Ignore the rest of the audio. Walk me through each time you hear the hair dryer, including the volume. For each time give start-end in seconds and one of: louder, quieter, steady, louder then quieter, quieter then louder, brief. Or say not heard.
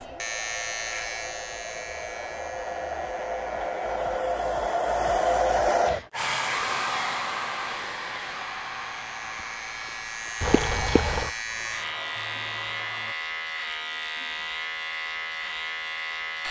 0.0-13.2 louder then quieter.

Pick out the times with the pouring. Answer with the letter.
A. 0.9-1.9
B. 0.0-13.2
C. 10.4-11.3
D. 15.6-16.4
C.